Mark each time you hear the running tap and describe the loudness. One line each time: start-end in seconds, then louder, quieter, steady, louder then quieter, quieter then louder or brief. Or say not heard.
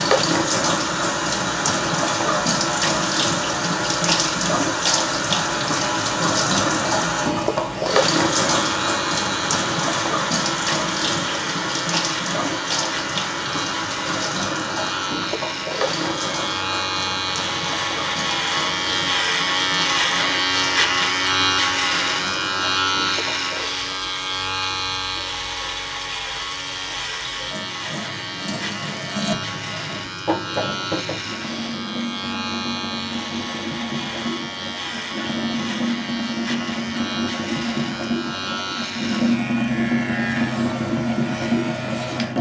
0.0-42.3 quieter then louder.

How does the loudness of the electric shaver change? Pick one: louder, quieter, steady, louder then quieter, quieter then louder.
louder then quieter.